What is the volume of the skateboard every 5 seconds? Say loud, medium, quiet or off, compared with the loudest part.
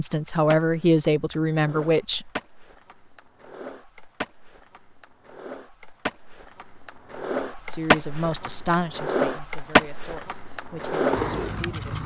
quiet, loud, loud.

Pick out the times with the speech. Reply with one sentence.
The speech can be heard from 0.0 to 2.3 s and from 7.7 to 11.9 s.